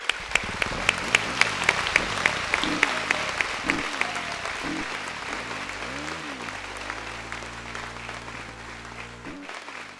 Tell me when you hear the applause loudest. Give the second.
2 s.